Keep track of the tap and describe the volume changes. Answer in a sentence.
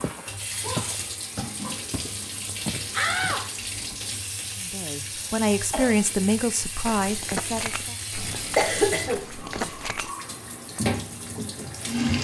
The loudness of the tap stays about the same.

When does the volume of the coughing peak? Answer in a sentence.
The loudest moment of the coughing is at 9 seconds.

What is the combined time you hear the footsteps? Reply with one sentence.
You can hear the footsteps for 8 seconds altogether.